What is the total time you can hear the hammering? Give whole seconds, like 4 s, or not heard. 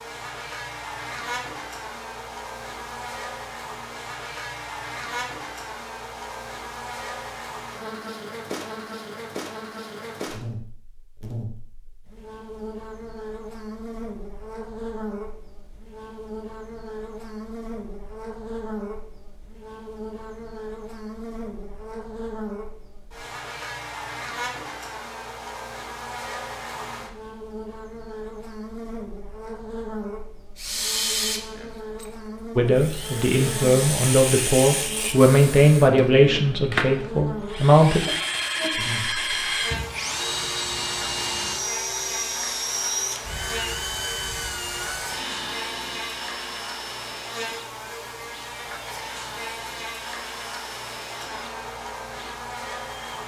not heard.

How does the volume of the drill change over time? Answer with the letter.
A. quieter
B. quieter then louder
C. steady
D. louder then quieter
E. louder
A.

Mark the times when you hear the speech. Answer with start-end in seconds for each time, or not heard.
32.5-38.0.